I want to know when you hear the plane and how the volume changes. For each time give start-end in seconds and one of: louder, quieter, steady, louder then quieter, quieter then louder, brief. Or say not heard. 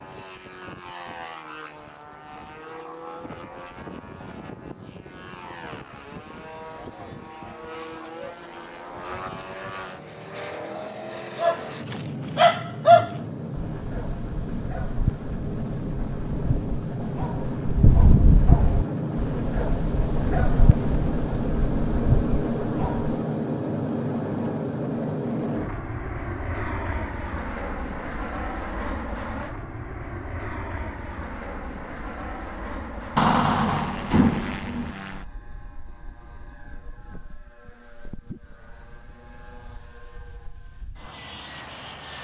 0.0-42.1 louder then quieter.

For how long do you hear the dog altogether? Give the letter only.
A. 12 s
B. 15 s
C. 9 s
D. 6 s
A.